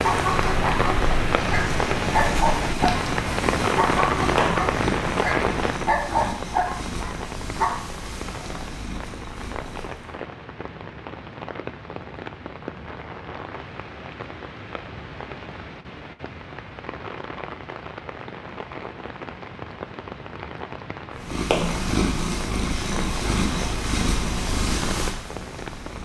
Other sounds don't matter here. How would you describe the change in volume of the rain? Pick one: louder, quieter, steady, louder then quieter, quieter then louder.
quieter.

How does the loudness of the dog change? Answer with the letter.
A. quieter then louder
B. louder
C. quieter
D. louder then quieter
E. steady
E.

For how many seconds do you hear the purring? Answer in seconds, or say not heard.
15 s.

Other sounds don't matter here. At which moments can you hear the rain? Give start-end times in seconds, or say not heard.
0.0-26.0.